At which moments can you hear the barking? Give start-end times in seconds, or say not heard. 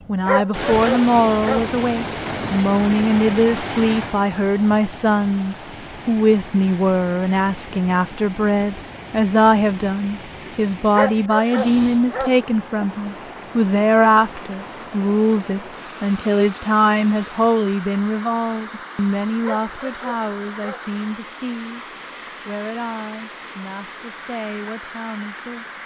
0.2-1.7, 10.9-12.4, 19.4-20.9.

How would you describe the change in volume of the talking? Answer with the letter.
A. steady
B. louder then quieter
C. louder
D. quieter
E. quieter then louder
D.